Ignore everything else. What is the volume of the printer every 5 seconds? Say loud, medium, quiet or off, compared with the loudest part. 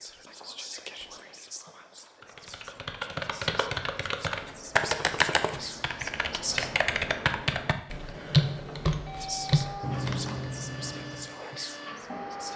off, loud, loud.